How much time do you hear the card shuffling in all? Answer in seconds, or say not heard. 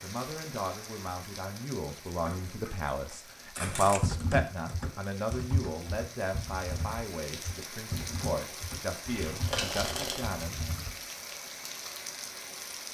3 s.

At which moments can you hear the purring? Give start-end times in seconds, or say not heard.
not heard.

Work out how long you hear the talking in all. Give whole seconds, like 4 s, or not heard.
11 s.